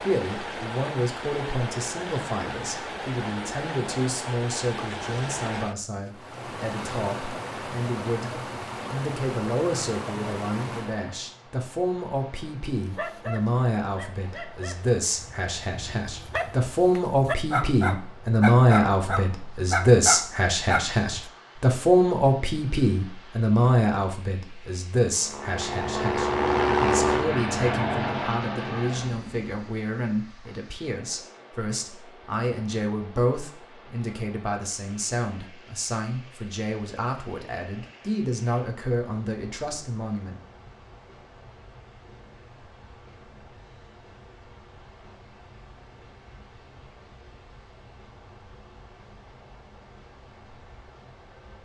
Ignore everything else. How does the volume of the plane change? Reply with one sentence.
The loudness of the plane goes up, then down.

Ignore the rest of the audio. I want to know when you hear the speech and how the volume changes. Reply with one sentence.
You can hear the speech from 0.0 to 40.4 s, getting louder then quieter.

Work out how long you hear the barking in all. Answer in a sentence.
The barking can be heard for 8 seconds in total.